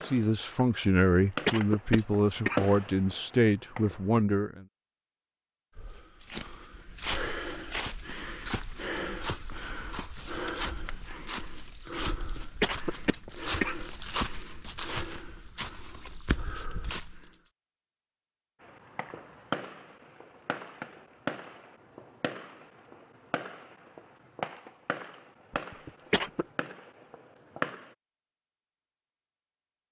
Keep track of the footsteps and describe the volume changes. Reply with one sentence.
The loudness of the footsteps stays about the same.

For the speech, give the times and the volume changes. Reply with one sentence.
You can hear the speech from 0.0 to 4.7 s, at a steady volume.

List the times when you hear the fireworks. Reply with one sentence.
You can hear the fireworks from 0.0 to 4.2 s and from 18.6 to 27.9 s.